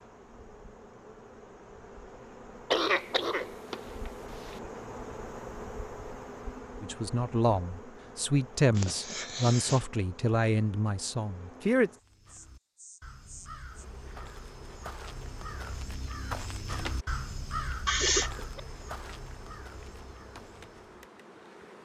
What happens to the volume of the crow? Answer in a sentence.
The loudness of the crow goes up, then down.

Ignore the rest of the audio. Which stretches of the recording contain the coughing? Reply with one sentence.
The coughing can be heard from 2.7 to 4.5 s, from 8.8 to 9.8 s and from 17.9 to 18.6 s.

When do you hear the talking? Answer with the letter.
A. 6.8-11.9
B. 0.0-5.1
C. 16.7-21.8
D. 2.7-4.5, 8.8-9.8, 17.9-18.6
A.